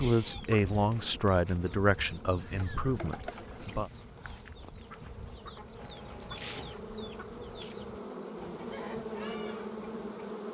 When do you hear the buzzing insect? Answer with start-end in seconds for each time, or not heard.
0.1-10.4.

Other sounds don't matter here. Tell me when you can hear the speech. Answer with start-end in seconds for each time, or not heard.
0.0-3.9.